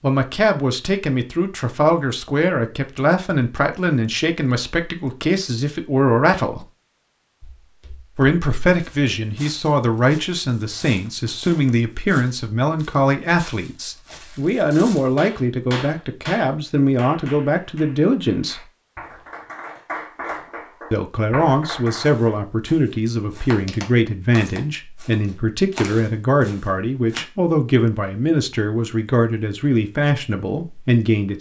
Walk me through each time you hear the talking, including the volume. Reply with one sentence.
The talking can be heard from 0.0 to 6.7 s, at a steady volume; from 8.2 to 18.6 s, at a steady volume; and from 20.9 to 31.3 s, at a steady volume.